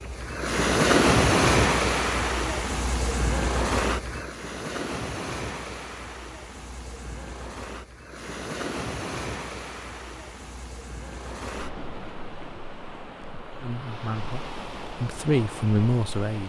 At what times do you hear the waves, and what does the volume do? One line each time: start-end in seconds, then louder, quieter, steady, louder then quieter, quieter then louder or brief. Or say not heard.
0.0-16.4 quieter.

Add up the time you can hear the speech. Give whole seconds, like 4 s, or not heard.
3 s.